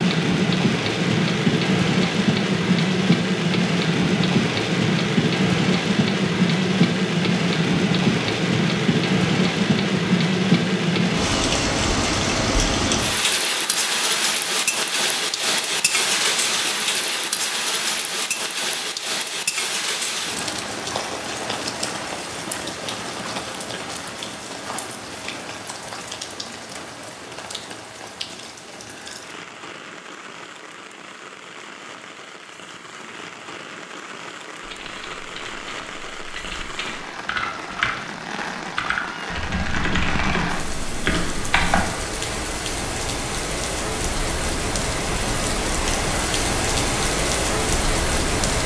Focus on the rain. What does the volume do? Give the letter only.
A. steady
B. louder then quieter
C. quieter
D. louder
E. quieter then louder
E.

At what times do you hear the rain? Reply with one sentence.
The rain can be heard from 0.0 to 48.6 s.